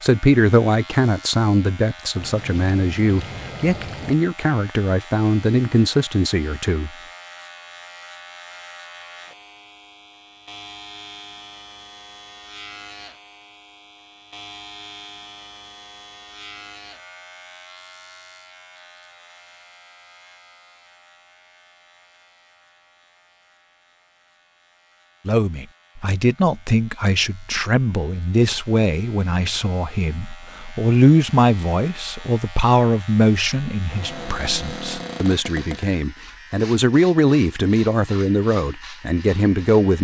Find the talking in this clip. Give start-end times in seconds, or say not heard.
0.0-6.9, 25.2-39.9.